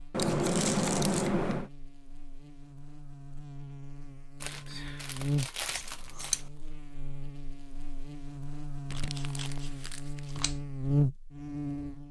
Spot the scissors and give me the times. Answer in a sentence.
You can hear the scissors from 0.1 to 1.7 s, from 5.7 to 6.5 s and from 8.9 to 10.6 s.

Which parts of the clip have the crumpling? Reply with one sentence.
You can hear the crumpling from 0.2 to 1.3 s, from 4.4 to 6.5 s and from 8.9 to 10.4 s.